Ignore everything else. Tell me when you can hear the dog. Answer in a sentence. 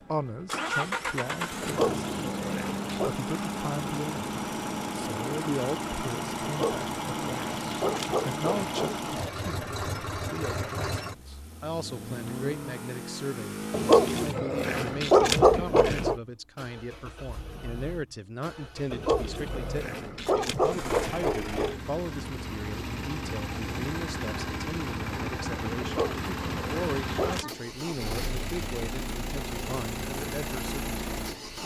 You can hear the dog from 1.6 to 3.1 s, from 6.4 to 9.0 s, from 13.7 to 16.1 s, from 18.9 to 21.8 s and from 25.8 to 27.5 s.